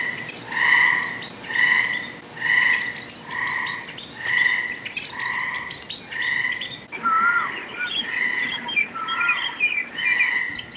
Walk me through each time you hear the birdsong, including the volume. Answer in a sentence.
You can hear the birdsong from 0.1 to 10.7 s, getting louder.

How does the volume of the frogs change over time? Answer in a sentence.
The loudness of the frogs goes down.